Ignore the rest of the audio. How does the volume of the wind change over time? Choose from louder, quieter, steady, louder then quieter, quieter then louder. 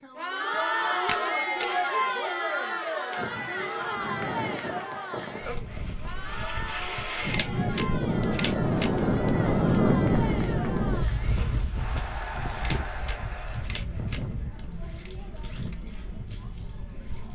louder then quieter.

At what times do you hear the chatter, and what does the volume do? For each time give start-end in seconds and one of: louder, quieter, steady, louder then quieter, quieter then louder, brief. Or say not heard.
0.0-17.3 quieter.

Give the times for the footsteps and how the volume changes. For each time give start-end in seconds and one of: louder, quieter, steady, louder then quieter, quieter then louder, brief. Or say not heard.
not heard.